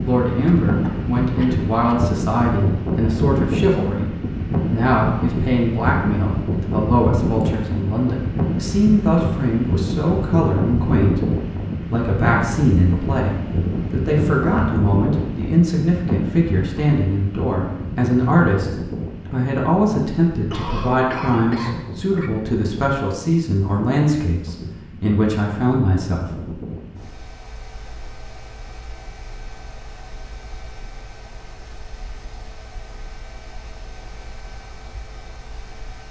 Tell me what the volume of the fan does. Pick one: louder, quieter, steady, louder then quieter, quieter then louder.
quieter.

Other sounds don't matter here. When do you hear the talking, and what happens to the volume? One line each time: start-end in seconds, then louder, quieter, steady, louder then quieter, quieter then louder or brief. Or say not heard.
0.0-26.6 steady.